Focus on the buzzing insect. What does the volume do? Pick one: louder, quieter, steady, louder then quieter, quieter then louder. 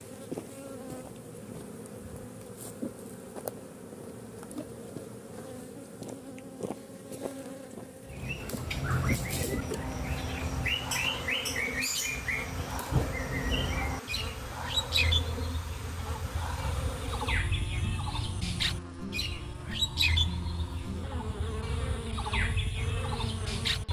steady.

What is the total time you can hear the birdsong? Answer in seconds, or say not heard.
16 s.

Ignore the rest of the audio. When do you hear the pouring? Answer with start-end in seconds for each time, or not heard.
not heard.